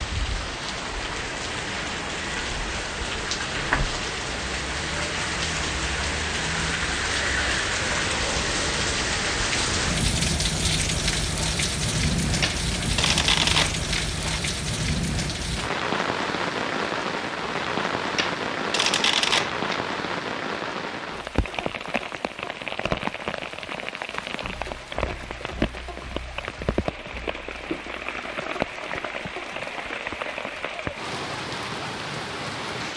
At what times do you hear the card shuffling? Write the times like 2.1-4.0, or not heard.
12.4-14.4, 18.1-19.8.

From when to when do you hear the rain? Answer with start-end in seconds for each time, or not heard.
0.0-32.9.